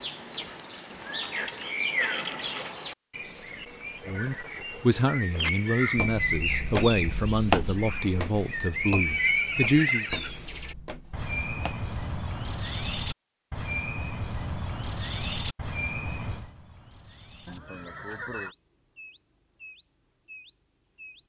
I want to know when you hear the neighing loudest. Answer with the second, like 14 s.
9 s.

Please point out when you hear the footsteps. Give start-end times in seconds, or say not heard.
5.3-11.8.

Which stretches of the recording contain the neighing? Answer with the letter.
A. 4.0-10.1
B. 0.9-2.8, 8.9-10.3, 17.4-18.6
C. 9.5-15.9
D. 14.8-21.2
B.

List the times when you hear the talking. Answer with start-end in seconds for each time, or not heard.
4.0-10.1.